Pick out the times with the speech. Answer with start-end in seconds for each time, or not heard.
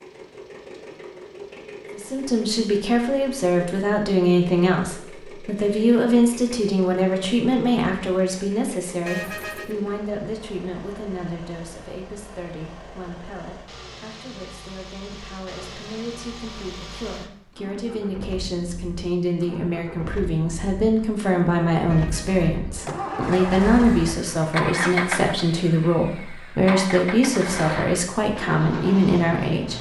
1.9-29.7.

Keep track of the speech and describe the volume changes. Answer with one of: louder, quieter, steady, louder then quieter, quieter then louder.
quieter then louder.